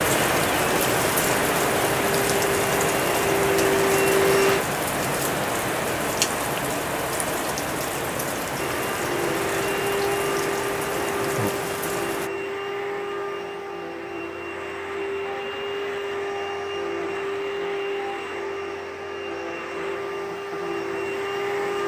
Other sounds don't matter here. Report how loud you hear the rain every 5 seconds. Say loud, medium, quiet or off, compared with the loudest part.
loud, loud, medium, off, off.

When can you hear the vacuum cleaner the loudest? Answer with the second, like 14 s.
4 s.